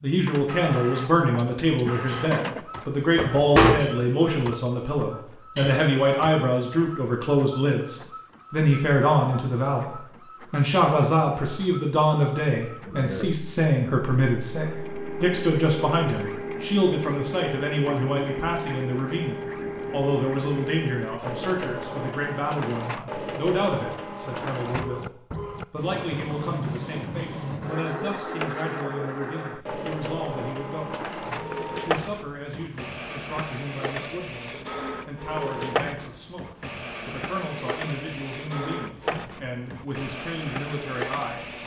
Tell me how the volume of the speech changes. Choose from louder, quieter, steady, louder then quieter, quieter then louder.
quieter.